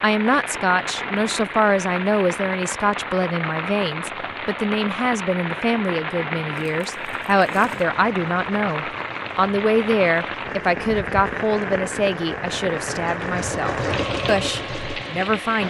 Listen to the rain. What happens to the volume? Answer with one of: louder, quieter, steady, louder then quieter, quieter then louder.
steady.